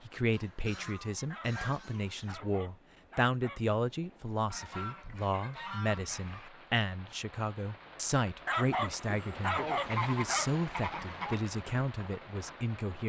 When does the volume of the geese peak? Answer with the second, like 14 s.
10 s.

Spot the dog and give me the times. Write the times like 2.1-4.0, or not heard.
1.3-3.6, 8.4-10.5.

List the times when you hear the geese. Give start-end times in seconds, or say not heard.
0.3-2.4, 4.5-6.5, 9.4-11.3.